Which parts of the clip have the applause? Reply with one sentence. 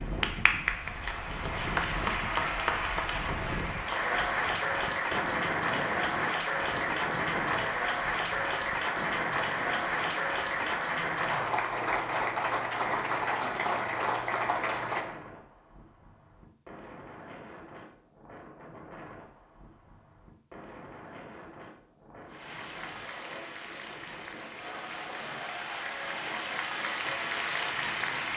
The applause can be heard from 0.0 to 15.2 s and from 22.2 to 28.3 s.